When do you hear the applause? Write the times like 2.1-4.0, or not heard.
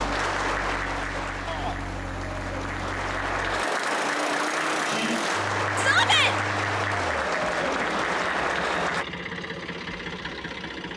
0.0-9.1.